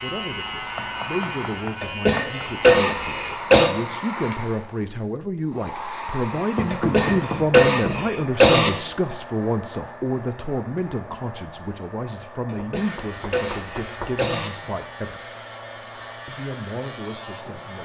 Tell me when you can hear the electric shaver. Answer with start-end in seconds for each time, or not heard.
0.0-3.4, 12.8-17.8.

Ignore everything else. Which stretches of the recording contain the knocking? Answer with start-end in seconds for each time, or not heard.
0.8-2.5, 6.5-8.2, 12.8-14.2.